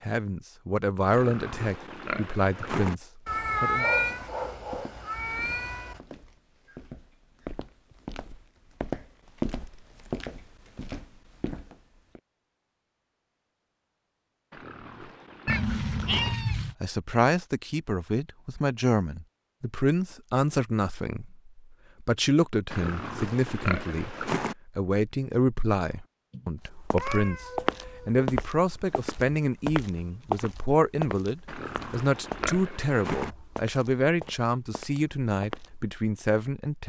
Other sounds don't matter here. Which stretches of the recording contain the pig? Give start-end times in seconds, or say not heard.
1.1-3.0, 14.5-16.4, 22.7-24.6, 31.4-33.4.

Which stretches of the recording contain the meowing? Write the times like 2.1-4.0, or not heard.
3.2-6.0, 15.4-16.8, 26.3-28.2.